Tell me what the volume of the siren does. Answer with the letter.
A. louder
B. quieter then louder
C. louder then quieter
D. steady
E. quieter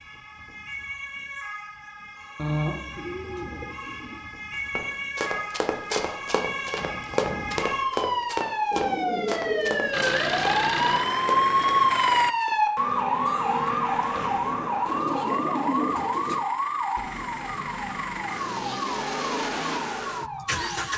C.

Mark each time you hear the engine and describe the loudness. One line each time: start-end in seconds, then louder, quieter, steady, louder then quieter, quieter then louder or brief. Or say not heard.
9.9-12.3 brief
15.2-20.9 louder.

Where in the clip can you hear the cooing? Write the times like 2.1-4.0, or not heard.
2.4-4.2, 8.7-9.9, 14.8-16.4.